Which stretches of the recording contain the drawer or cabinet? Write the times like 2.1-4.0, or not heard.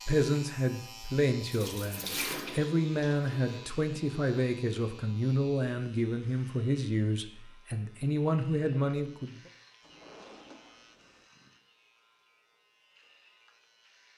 9.8-11.3.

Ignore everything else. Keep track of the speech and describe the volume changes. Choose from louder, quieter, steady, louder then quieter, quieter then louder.
steady.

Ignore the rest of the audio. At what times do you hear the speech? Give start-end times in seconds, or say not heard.
0.1-9.4.